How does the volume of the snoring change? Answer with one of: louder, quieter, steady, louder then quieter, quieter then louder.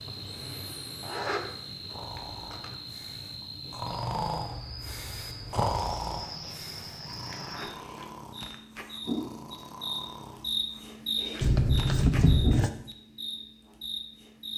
louder then quieter.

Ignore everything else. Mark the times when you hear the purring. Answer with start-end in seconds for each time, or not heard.
not heard.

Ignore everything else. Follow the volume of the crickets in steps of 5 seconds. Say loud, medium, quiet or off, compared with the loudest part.
medium, loud, loud.